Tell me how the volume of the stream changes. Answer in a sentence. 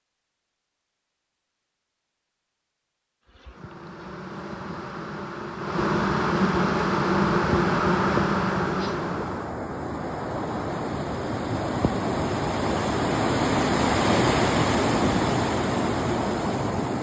The loudness of the stream goes up.